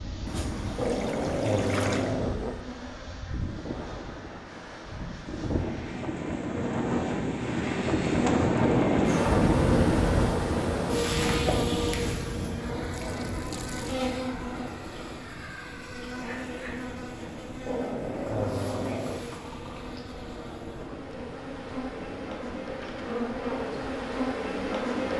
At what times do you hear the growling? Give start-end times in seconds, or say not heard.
0.8-2.5, 8.6-9.5, 17.6-19.2.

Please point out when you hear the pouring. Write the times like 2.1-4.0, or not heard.
0.2-2.2, 12.8-13.9, 18.2-20.0.